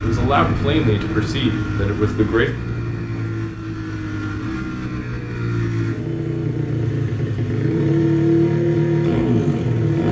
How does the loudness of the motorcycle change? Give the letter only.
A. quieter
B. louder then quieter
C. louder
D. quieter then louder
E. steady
C.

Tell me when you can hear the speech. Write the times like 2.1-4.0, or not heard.
0.0-2.5.